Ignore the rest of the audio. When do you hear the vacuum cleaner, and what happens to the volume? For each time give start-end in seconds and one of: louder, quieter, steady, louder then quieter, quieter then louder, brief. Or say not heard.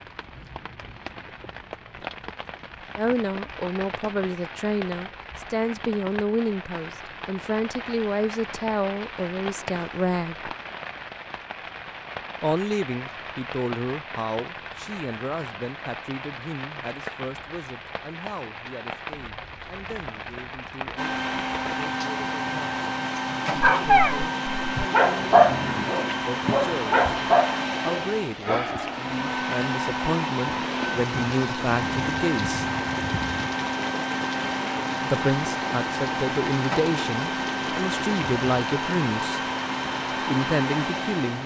20.9-41.4 steady.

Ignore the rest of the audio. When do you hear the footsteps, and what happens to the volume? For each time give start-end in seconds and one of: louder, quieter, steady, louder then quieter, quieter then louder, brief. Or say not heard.
not heard.